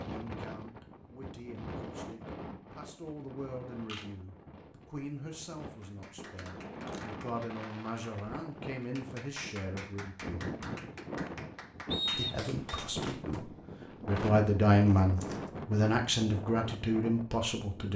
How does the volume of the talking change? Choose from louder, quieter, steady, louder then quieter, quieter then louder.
louder.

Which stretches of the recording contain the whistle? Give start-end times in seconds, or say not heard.
11.9-12.8.